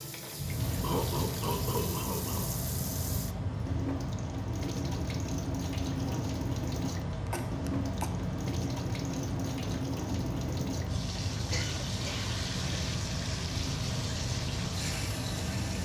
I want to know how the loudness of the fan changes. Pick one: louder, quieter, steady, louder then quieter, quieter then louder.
steady.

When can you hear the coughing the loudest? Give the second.
1 s.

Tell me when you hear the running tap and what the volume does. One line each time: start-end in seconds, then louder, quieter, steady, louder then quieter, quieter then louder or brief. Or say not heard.
0.0-15.8 steady.